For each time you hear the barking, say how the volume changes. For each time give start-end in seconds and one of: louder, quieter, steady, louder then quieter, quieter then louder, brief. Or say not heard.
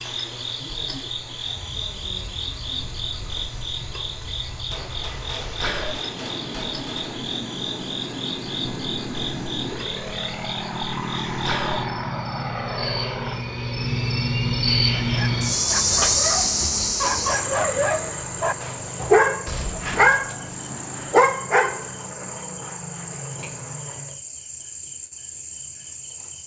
14.9-21.9 louder.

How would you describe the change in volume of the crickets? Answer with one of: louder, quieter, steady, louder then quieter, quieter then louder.
louder then quieter.